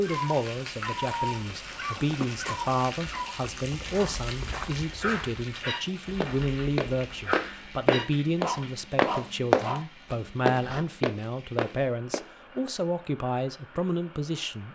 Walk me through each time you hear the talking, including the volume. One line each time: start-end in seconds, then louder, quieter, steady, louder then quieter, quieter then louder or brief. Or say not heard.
0.0-14.7 steady.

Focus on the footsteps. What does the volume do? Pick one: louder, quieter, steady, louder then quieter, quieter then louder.
louder then quieter.